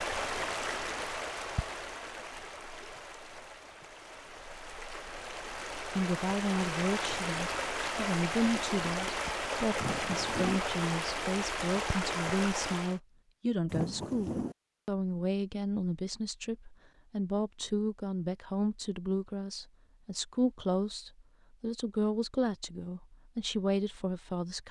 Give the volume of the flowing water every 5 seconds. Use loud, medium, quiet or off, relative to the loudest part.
medium, loud, loud, off, off.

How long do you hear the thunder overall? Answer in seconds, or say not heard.
2 s.